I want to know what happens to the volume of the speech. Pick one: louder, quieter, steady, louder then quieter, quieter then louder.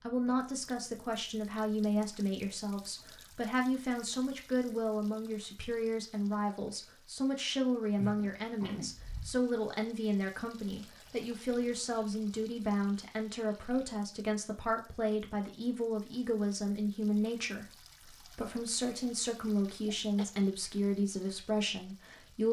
steady.